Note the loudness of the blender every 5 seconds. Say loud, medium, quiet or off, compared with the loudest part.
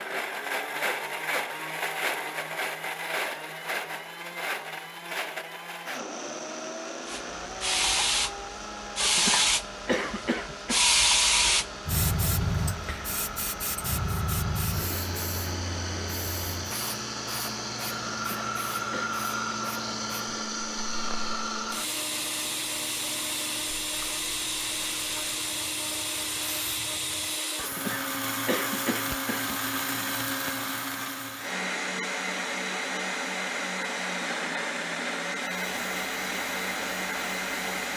loud, medium, medium, loud, loud, loud, loud, loud.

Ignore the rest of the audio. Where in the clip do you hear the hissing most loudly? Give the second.
11 s.